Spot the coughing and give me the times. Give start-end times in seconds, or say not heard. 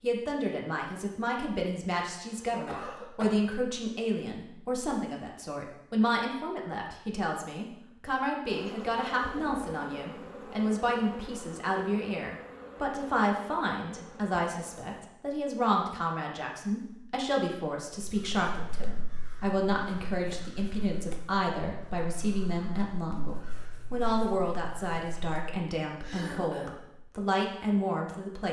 2.2-3.4, 26.0-26.8.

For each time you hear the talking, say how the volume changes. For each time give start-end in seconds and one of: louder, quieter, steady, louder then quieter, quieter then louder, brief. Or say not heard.
0.0-28.4 steady.